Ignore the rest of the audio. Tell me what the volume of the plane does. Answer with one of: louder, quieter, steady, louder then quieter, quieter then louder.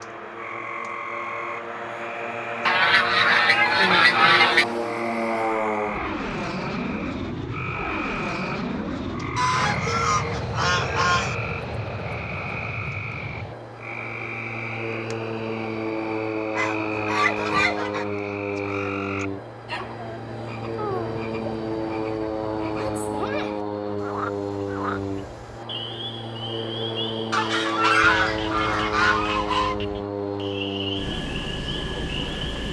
steady.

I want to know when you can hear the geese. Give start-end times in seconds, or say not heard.
2.6-4.7, 9.3-11.3, 16.6-18.1, 27.3-29.8.